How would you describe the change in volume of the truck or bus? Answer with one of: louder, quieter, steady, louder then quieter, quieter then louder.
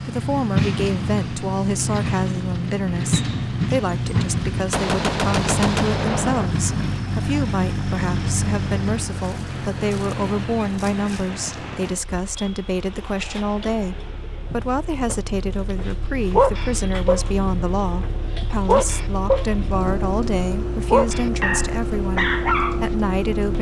quieter then louder.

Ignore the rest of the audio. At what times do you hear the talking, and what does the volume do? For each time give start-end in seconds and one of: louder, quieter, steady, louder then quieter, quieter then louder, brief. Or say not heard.
0.0-23.5 steady.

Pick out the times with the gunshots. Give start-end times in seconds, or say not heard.
4.7-6.5.